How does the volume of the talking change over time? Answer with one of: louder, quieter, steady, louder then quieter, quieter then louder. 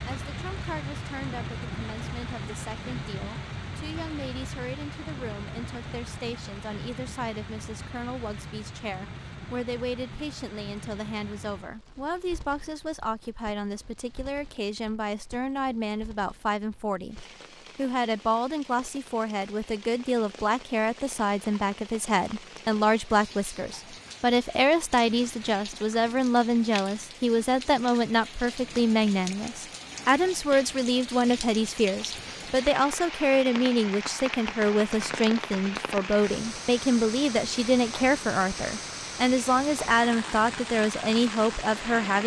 louder.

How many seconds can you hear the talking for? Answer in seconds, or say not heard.
42 s.